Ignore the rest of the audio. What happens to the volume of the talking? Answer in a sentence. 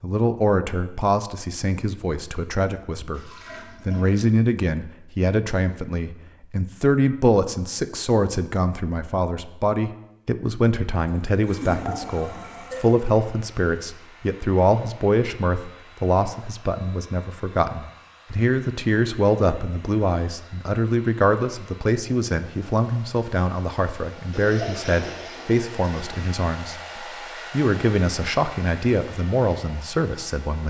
The loudness of the talking stays about the same.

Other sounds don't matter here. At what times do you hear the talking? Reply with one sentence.
You can hear the talking from 0.0 to 30.6 s.